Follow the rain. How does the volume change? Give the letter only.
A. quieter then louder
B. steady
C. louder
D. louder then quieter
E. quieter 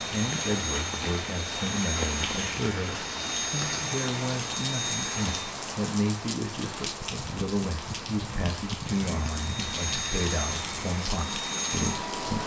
B.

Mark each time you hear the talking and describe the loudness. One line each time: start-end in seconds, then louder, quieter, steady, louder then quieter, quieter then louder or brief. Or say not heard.
0.0-12.4 steady.